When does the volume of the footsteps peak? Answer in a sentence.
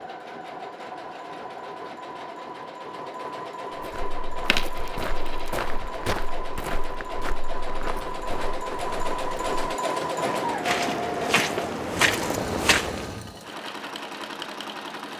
The volume of the footsteps peaks at 12 seconds.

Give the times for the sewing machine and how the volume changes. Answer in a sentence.
The sewing machine can be heard from 0.0 to 15.1 s, getting louder then quieter.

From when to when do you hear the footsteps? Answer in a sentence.
The footsteps can be heard from 3.8 to 13.2 s.